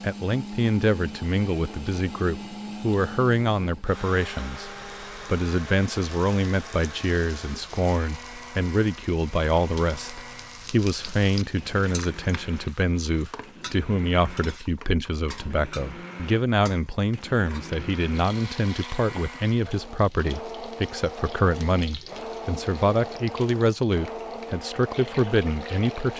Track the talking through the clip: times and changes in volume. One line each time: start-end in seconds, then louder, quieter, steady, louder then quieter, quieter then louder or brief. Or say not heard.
0.0-26.1 steady.